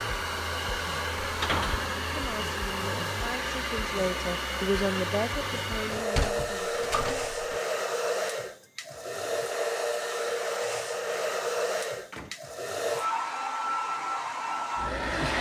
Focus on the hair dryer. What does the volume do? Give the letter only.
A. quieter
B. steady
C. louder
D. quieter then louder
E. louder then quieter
B.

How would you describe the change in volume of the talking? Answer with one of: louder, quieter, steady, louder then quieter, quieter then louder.
louder then quieter.